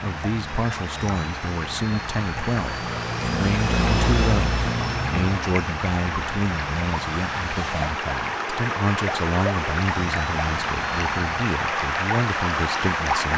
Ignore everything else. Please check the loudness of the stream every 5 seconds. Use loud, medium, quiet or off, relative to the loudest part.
medium, loud, loud.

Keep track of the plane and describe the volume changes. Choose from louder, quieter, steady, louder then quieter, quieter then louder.
louder then quieter.